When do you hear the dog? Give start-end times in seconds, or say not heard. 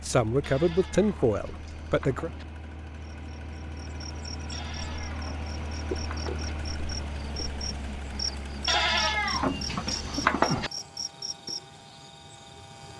not heard.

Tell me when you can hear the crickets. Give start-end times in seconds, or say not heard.
3.2-12.9.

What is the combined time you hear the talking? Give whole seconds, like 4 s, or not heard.
2 s.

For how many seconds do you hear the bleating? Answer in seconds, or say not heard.
6 s.